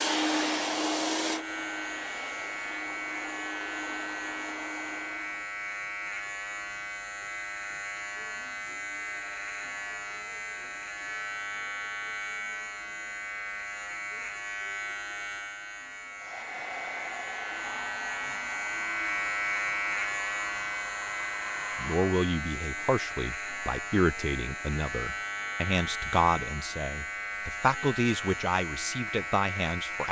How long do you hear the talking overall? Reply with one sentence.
The talking can be heard for 8 seconds in total.